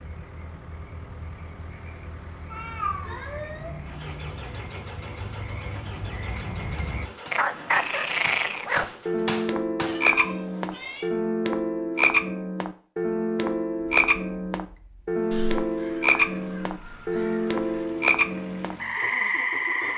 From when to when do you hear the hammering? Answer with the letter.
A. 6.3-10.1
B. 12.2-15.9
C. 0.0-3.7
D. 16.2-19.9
A.